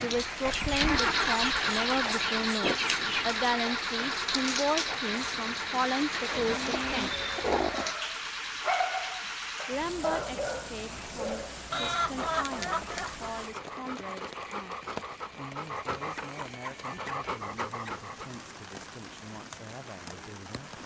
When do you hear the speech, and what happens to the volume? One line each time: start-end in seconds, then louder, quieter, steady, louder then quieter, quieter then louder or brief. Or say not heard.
0.0-7.2 steady
9.7-20.8 quieter.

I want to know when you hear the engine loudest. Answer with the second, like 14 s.
1 s.